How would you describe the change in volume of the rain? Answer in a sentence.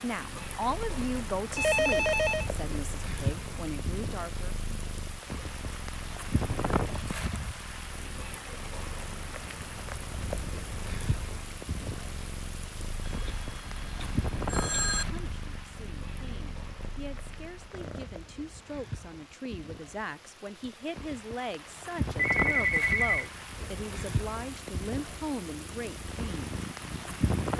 The volume of the rain goes down, then up.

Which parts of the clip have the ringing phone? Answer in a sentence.
You can hear the ringing phone from 1.6 to 2.5 s, from 13.1 to 15.1 s and from 22.1 to 23.3 s.